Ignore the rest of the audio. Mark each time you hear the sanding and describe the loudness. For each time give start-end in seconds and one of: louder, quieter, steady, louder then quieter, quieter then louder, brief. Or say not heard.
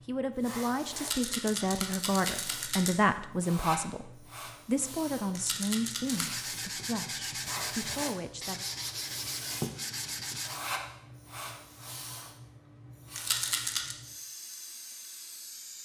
6.0-10.6 steady.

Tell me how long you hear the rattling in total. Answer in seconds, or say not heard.
4 s.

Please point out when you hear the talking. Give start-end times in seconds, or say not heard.
0.1-8.6.